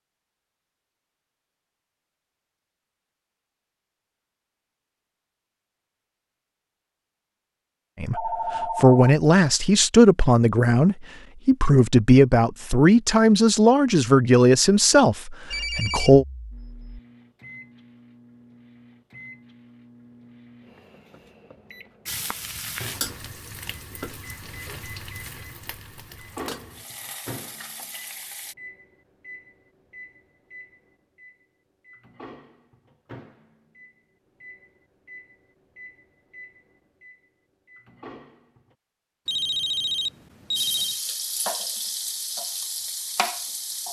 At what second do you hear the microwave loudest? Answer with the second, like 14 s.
27 s.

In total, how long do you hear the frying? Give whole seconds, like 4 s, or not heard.
10 s.